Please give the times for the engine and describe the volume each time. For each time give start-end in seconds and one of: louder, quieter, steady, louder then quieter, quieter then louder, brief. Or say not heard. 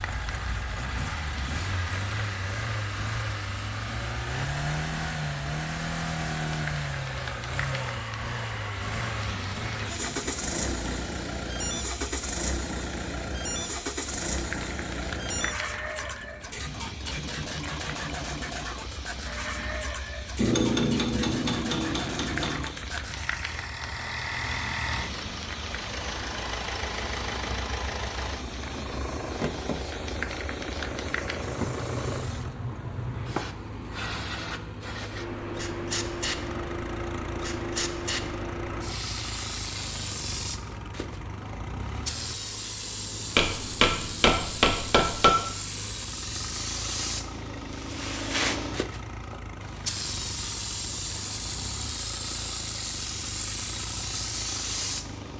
0.0-55.3 quieter.